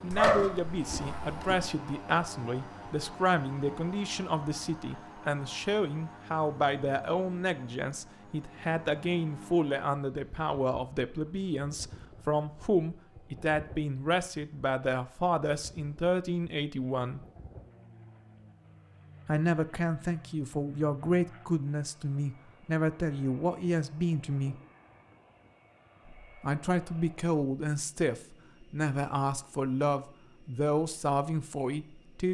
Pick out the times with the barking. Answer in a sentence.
You can hear the barking from 0.1 to 1.7 s.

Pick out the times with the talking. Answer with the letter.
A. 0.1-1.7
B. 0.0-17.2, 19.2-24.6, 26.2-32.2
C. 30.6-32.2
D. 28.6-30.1
B.